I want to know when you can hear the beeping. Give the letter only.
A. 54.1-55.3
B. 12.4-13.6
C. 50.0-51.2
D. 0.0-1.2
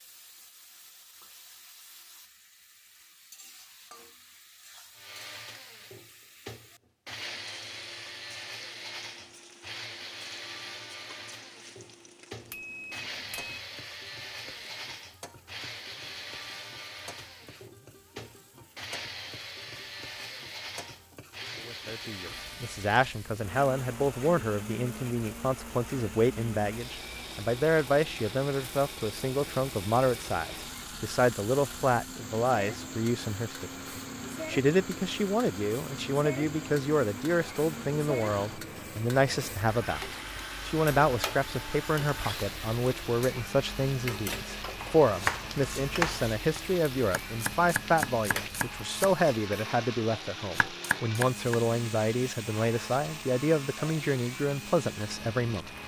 B.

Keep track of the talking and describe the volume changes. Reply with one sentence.
The loudness of the talking stays about the same.